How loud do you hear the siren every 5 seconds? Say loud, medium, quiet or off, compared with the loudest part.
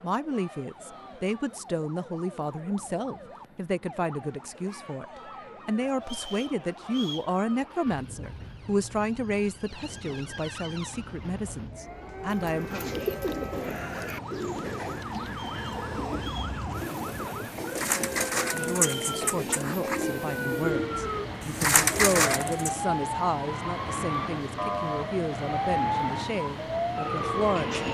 quiet, quiet, medium, medium, loud, loud.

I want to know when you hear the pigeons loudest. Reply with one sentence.
The loudest moment of the pigeons is at 22 seconds.